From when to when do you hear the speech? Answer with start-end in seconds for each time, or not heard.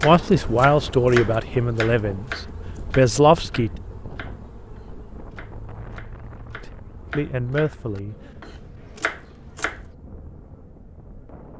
0.0-3.7, 6.6-8.2.